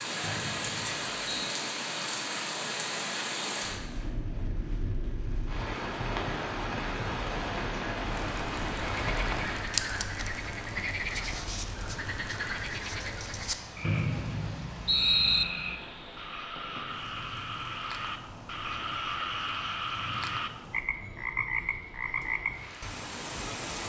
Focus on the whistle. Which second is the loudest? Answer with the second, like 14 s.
15 s.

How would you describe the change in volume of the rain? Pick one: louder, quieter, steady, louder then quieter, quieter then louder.
quieter.